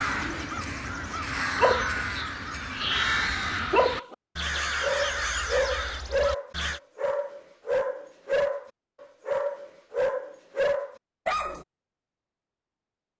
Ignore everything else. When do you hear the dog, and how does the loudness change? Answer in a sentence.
You can hear the dog from 1.6 to 11.7 s, at a steady volume.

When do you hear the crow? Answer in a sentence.
The crow can be heard from 0.0 to 6.8 s.